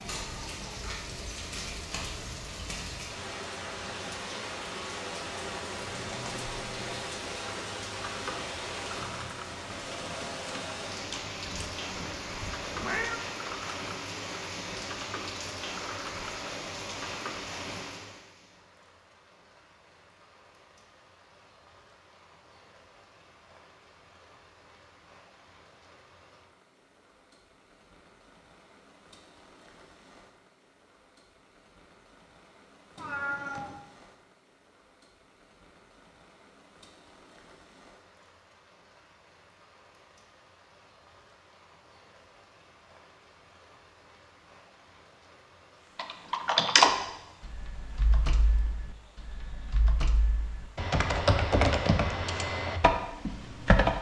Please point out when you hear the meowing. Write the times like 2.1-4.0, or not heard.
11.4-13.2, 33.0-33.8.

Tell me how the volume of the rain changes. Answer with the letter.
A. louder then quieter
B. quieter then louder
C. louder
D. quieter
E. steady
D.